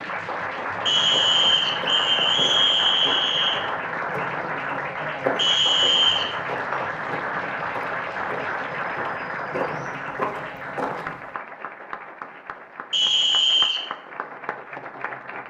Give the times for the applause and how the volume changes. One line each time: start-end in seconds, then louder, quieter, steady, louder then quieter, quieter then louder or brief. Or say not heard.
0.0-15.4 quieter.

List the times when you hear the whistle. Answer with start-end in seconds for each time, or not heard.
0.8-3.6, 5.3-6.3, 12.9-13.8.